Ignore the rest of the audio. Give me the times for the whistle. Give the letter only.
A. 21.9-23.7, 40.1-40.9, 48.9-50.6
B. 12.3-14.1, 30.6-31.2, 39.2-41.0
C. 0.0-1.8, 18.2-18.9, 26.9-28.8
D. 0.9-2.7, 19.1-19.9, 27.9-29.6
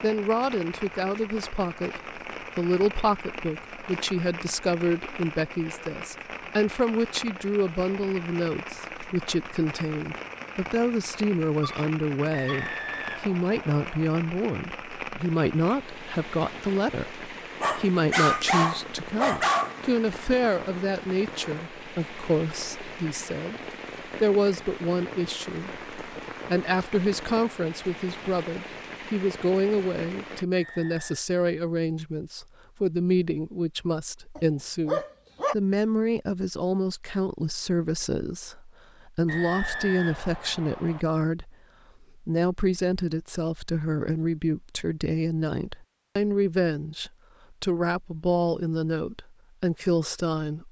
B.